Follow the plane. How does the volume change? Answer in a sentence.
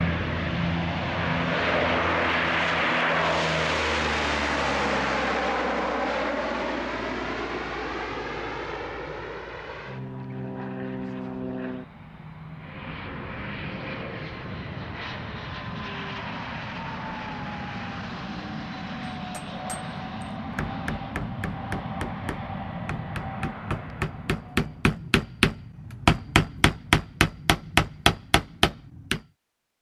The loudness of the plane goes down.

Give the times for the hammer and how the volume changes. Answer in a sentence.
You can hear the hammer from 19.3 to 29.2 s, getting louder.